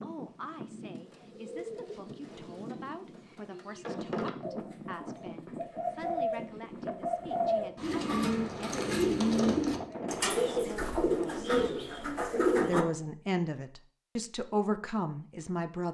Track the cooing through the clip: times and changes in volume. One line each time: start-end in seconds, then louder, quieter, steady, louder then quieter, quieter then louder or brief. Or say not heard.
0.9-12.8 louder.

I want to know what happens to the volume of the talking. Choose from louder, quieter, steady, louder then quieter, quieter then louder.
louder.